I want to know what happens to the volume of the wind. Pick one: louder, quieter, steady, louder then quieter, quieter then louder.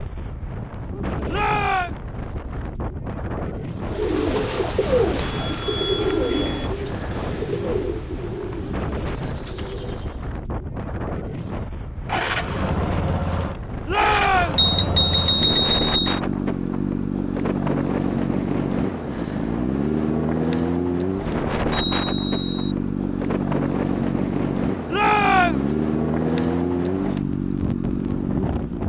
steady.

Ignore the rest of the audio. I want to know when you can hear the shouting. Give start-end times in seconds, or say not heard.
1.2-1.9, 13.8-14.7, 24.9-25.8.